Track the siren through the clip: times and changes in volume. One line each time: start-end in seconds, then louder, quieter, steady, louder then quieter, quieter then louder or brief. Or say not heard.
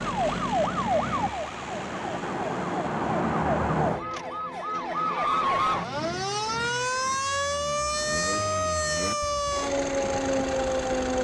0.0-11.1 steady.